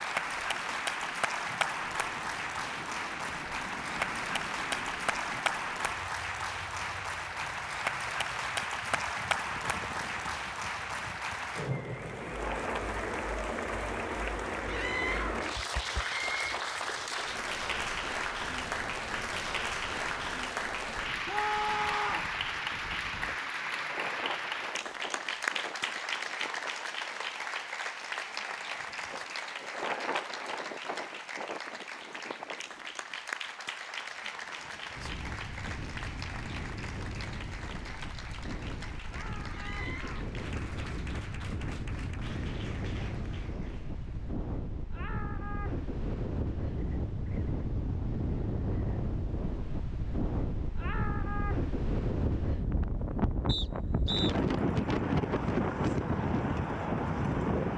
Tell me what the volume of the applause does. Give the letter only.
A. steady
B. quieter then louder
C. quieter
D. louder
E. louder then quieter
C.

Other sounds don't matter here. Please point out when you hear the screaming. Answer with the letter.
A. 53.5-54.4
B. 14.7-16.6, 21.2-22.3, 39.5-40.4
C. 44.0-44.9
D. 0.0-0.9
B.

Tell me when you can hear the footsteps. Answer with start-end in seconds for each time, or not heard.
not heard.